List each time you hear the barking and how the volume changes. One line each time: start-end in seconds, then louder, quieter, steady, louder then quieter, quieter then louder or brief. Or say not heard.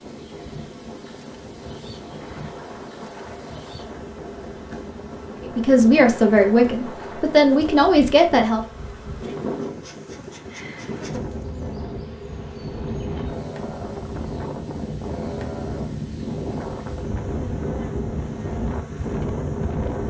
not heard.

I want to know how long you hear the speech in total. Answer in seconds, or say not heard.
3 s.